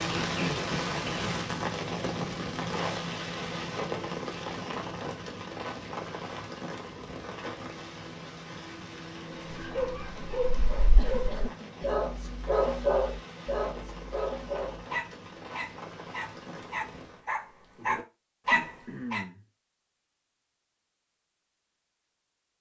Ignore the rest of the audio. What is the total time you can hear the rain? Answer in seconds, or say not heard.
17 s.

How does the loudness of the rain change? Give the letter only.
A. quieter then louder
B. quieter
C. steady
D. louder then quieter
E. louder
B.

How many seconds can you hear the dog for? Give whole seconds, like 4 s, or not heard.
10 s.